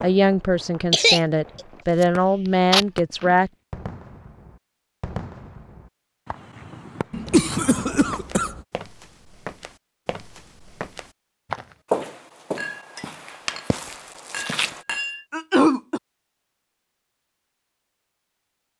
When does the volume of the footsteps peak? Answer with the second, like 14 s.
12 s.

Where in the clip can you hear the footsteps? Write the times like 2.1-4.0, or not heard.
7.9-14.8.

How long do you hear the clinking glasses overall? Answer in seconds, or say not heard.
3 s.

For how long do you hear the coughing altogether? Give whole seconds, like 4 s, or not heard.
4 s.